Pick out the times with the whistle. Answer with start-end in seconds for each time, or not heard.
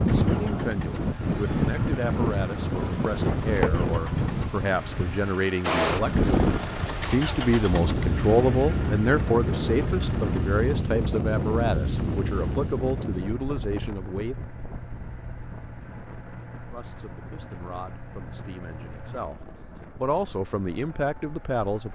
not heard.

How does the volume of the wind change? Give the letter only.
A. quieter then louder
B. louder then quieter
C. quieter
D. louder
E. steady
C.